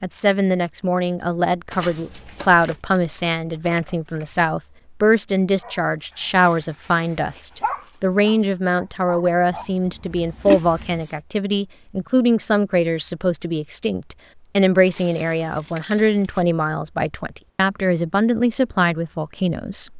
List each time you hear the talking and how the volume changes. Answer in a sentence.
You can hear the talking from 0.0 to 19.9 s, at a steady volume.